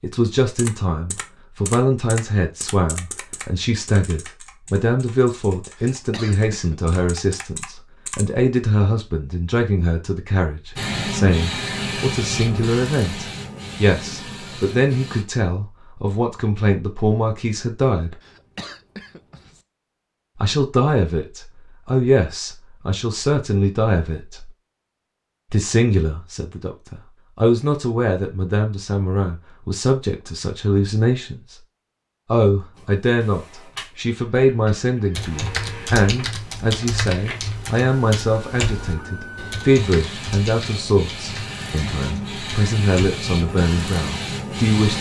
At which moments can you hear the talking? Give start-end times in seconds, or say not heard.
0.0-18.1, 20.4-24.5, 25.5-31.6, 32.2-44.9.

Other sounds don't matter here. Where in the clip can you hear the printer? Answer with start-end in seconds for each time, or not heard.
10.8-15.2, 32.7-44.9.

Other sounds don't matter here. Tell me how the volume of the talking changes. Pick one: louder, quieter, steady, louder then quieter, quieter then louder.
steady.